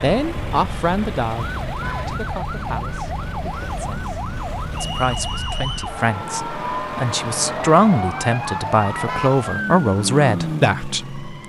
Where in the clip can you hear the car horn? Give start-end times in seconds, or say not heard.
1.7-2.1, 8.9-9.4.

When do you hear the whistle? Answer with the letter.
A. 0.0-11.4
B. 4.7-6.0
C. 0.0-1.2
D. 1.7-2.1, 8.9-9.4
B.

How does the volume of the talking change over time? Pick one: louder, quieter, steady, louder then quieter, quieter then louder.
quieter then louder.